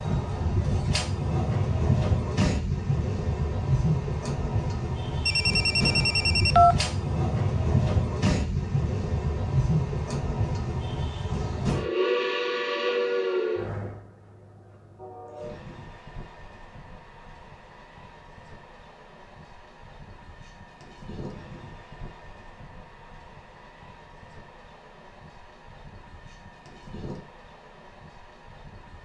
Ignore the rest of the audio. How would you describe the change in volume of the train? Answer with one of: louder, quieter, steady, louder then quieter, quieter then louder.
quieter.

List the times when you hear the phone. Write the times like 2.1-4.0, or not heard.
5.2-6.8.